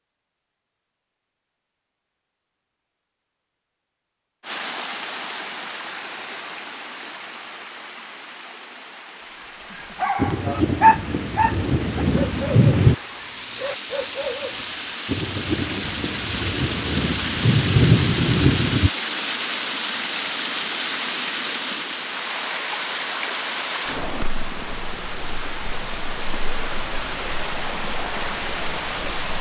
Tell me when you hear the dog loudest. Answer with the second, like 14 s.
11 s.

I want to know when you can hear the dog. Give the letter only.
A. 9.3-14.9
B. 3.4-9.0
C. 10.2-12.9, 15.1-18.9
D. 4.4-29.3
A.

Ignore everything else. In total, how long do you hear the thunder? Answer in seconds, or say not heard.
7 s.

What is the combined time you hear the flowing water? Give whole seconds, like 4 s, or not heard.
25 s.